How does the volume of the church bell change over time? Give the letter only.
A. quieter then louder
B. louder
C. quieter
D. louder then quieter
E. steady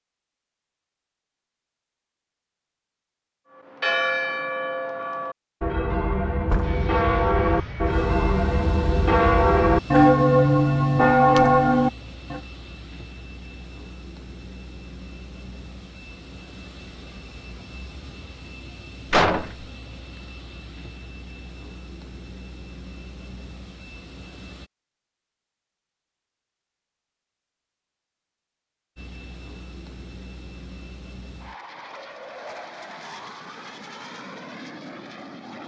B.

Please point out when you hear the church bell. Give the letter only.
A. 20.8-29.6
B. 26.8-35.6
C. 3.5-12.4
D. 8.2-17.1
C.